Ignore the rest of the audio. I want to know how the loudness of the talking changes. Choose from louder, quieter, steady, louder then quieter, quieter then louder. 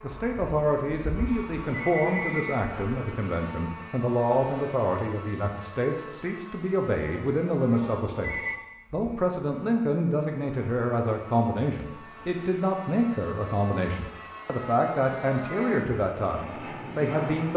steady.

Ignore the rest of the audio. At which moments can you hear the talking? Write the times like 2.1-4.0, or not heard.
0.0-17.5.